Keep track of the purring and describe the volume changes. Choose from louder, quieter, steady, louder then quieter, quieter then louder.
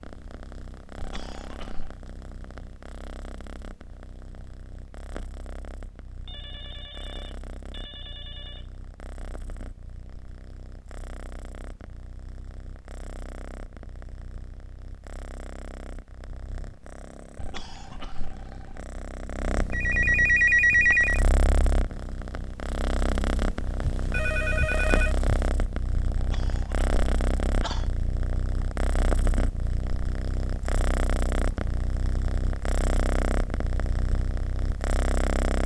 louder.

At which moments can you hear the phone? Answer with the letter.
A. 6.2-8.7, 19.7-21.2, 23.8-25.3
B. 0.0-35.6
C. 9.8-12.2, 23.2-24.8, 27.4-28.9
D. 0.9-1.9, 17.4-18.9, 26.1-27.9
A.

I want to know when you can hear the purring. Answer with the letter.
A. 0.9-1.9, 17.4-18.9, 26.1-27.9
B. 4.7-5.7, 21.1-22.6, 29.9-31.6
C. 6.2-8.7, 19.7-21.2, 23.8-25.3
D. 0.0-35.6
D.